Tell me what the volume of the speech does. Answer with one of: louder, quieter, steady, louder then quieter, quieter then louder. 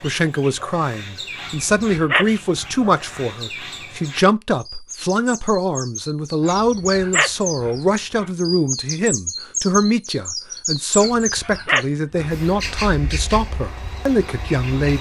steady.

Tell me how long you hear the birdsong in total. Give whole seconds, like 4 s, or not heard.
15 s.